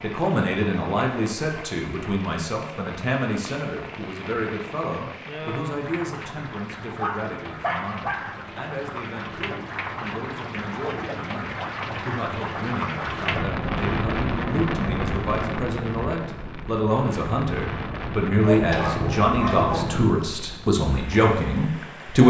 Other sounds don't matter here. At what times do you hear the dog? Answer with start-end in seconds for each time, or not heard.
7.0-8.4, 18.4-20.2.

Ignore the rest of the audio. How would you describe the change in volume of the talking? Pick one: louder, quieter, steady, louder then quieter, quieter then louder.
quieter then louder.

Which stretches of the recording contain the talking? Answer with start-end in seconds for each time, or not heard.
0.0-22.2.